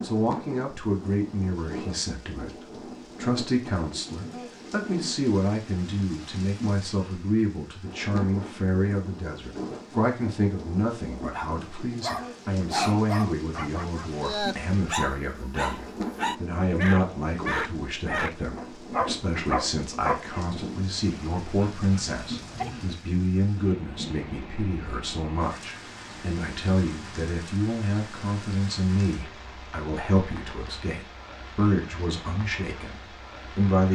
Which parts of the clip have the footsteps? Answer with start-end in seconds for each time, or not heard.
not heard.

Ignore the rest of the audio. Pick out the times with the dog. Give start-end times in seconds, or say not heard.
12.0-22.9.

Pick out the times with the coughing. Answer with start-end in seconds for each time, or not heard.
not heard.